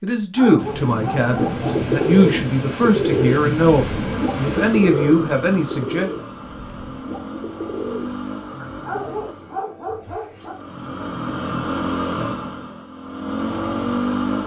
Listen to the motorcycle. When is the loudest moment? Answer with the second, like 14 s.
14 s.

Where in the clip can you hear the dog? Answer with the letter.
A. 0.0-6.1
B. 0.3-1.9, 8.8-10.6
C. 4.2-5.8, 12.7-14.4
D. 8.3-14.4
B.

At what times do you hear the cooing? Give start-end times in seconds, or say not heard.
1.2-9.3.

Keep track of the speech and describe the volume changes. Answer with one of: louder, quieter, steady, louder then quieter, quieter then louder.
steady.